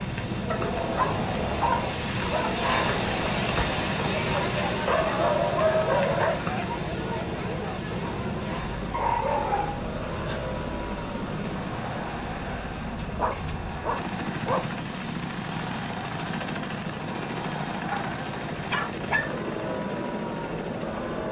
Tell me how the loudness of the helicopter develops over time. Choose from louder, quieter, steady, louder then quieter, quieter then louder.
steady.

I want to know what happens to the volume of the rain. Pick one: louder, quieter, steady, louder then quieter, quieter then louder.
quieter.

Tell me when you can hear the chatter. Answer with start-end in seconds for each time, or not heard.
0.2-21.2.